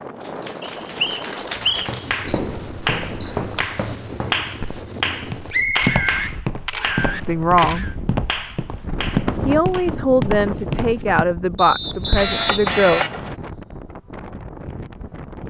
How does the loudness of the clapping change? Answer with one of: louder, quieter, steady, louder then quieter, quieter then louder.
louder then quieter.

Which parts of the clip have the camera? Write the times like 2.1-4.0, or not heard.
2.2-3.6, 5.8-8.0, 12.2-13.2.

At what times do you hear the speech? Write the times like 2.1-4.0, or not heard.
7.2-7.8, 9.4-13.1.